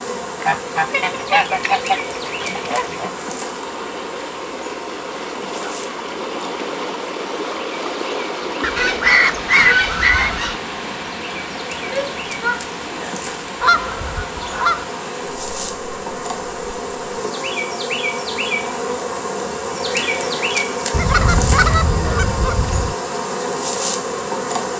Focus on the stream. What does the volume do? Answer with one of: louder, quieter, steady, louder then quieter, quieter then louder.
louder then quieter.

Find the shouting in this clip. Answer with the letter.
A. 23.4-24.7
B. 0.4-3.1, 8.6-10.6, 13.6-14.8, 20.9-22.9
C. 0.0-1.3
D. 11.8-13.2
D.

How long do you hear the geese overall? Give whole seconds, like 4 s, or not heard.
8 s.